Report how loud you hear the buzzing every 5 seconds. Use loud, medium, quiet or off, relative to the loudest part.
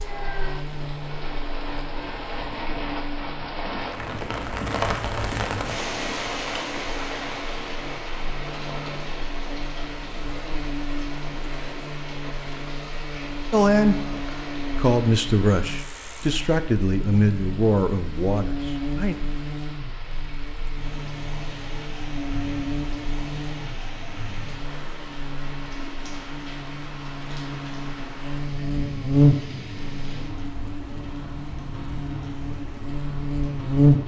quiet, quiet, medium, medium, medium, loud, loud.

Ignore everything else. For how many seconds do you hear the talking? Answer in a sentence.
You can hear the talking for 5 seconds altogether.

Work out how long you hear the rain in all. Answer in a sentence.
The rain can be heard for 34 seconds in total.